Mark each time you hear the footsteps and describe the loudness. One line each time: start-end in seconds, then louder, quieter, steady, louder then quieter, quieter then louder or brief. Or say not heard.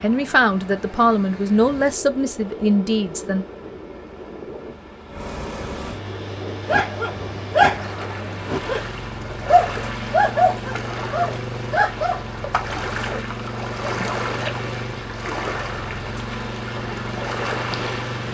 not heard.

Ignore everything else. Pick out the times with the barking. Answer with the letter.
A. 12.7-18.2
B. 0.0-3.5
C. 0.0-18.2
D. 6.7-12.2
D.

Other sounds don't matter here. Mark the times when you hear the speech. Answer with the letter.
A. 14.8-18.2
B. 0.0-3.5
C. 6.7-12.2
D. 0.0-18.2
B.